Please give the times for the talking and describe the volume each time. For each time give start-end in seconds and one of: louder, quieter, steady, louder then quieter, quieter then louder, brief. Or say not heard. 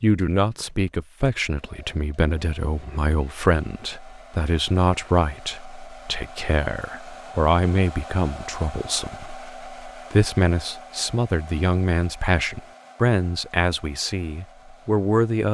0.0-15.4 steady.